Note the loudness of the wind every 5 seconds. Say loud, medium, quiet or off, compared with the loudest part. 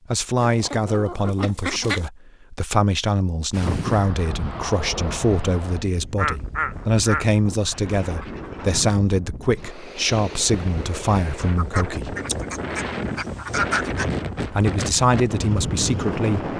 loud, medium, loud, loud.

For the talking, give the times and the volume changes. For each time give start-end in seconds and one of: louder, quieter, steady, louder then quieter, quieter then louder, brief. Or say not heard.
0.1-12.2 steady
14.4-16.5 brief.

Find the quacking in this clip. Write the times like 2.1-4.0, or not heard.
0.4-2.1, 6.2-8.8, 11.6-14.2.